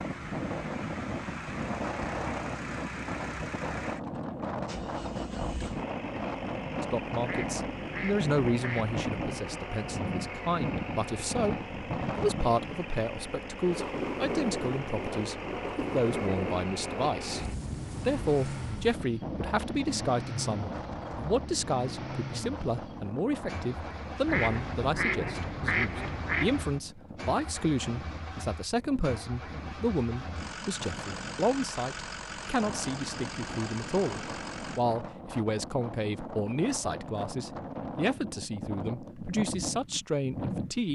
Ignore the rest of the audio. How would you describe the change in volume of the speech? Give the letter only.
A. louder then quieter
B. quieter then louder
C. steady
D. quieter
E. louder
C.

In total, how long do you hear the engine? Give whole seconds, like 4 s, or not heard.
35 s.